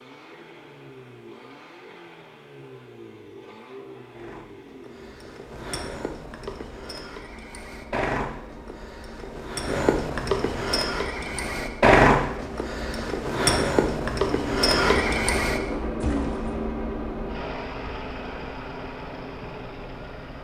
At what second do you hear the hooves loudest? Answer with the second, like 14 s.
12 s.